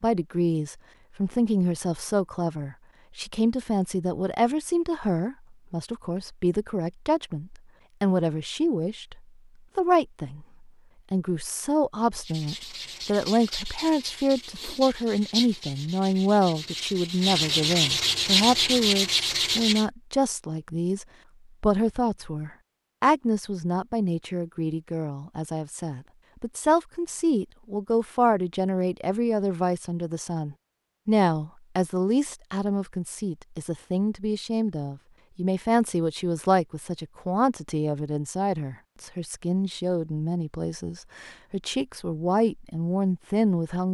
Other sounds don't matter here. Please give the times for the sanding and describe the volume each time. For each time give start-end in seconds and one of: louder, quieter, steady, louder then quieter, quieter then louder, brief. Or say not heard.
12.2-19.9 louder.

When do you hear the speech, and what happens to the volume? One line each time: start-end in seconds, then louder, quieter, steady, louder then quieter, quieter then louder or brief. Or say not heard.
0.0-10.4 steady
11.1-43.9 steady.